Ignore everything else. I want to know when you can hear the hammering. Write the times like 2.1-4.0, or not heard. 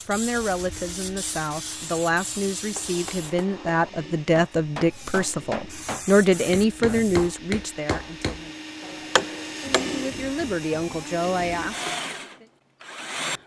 2.8-10.1.